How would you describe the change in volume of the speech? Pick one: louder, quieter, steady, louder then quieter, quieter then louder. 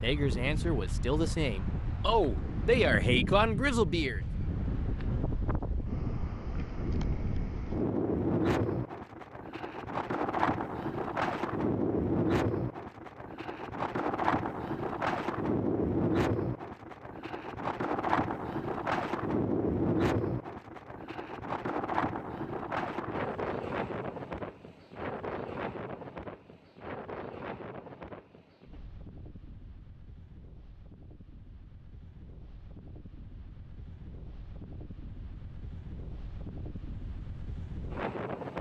louder.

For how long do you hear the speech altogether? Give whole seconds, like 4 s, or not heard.
4 s.